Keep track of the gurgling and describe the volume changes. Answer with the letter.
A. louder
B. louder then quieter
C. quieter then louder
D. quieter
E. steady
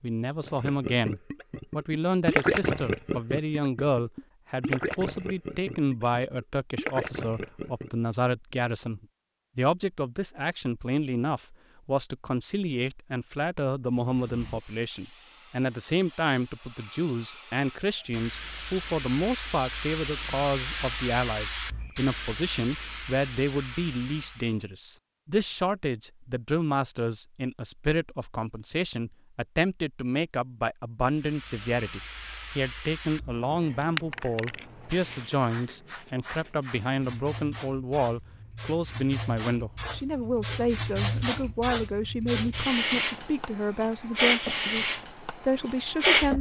B.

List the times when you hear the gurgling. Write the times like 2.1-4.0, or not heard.
0.4-7.9.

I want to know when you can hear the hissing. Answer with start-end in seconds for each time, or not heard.
13.9-24.6, 31.1-46.3.